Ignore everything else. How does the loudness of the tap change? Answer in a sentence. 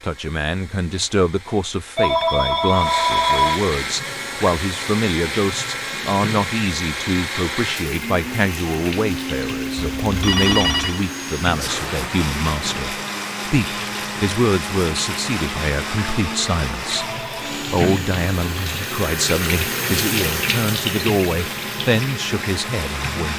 The loudness of the tap goes up.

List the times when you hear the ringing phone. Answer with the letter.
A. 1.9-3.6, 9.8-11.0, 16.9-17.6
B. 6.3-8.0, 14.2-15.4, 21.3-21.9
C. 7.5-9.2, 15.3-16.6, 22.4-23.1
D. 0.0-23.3
A.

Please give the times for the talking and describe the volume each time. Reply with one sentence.
The talking can be heard from 0.0 to 23.3 s, at a steady volume.